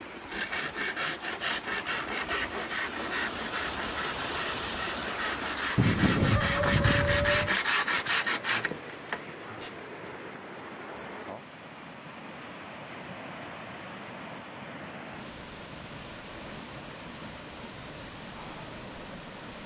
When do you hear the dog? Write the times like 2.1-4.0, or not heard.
5.8-7.5.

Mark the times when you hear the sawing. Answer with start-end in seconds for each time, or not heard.
0.3-9.7.